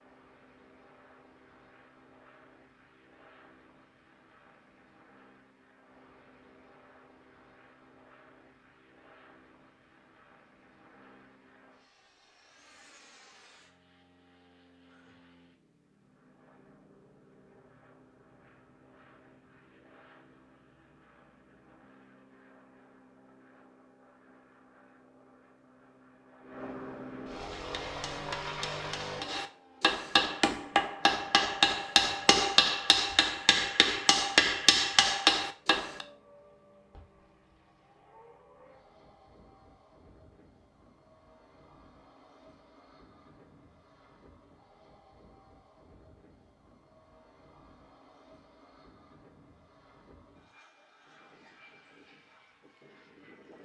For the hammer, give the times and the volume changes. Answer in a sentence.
The hammer can be heard from 27.6 to 36.0 s, getting louder.